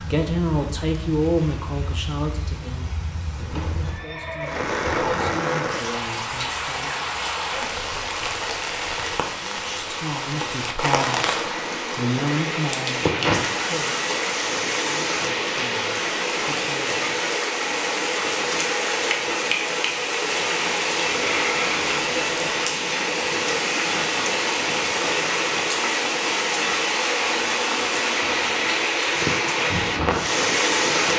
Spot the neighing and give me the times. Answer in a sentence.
You can hear the neighing from 3.4 to 5.3 s and from 21.2 to 22.6 s.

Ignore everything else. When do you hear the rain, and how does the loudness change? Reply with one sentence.
You can hear the rain from 0.0 to 31.1 s, getting louder.